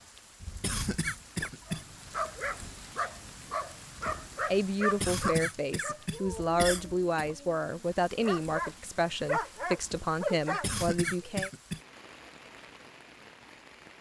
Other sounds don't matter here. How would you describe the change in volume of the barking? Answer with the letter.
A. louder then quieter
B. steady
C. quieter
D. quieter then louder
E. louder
D.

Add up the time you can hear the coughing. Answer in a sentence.
The coughing can be heard for 5 seconds in total.